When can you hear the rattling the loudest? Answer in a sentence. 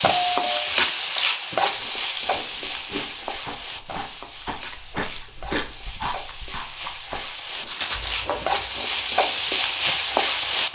The loudest moment of the rattling is at 8 seconds.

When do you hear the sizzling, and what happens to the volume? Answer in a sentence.
You can hear the sizzling from 0.0 to 10.6 s, getting quieter then louder.